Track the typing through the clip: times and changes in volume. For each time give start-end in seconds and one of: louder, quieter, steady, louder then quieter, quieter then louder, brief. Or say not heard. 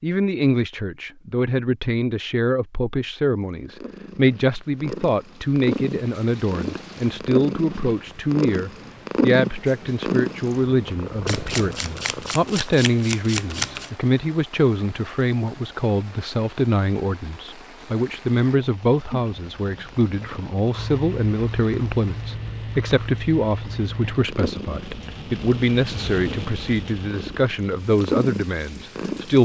not heard.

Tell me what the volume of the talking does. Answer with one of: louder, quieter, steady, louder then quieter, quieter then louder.
steady.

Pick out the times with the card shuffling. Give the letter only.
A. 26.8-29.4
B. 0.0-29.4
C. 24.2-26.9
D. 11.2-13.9
D.